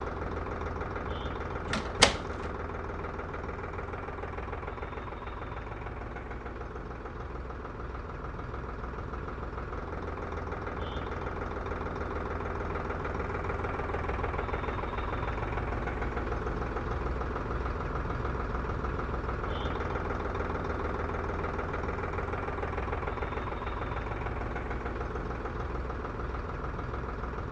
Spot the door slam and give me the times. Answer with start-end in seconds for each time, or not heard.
1.6-2.5.